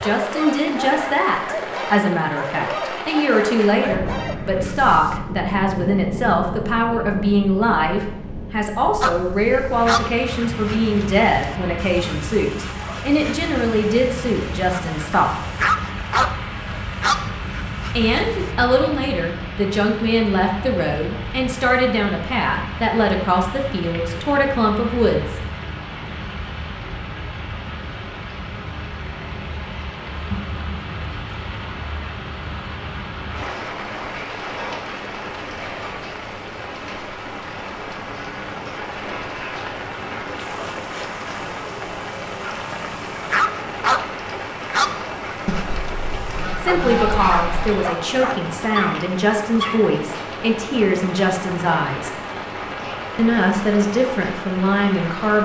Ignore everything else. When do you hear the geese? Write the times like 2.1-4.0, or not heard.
45.5-47.9.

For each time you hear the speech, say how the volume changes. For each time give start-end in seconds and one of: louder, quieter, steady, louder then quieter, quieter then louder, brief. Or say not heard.
0.0-15.3 steady
17.9-25.4 steady
46.6-52.1 steady
53.1-55.4 brief.